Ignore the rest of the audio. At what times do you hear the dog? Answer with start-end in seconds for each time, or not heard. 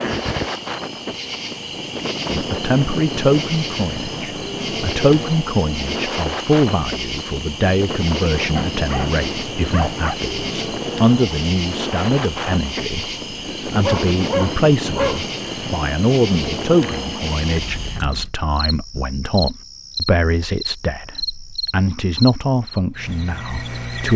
8.6-10.2, 13.8-15.2.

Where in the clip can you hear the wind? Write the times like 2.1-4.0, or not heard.
0.0-18.4.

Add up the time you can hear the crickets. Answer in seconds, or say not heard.
24 s.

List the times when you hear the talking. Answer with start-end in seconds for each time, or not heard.
2.3-24.1.